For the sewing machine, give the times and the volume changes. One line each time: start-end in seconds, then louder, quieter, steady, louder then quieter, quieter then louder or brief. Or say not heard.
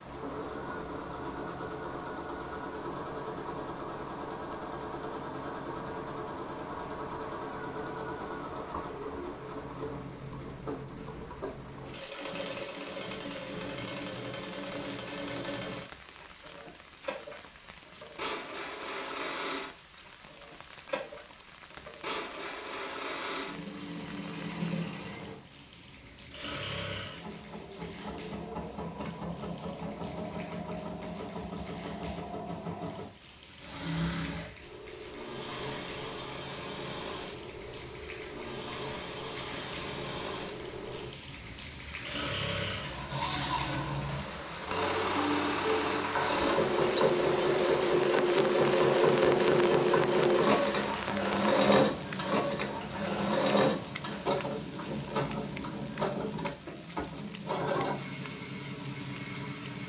0.0-59.8 louder.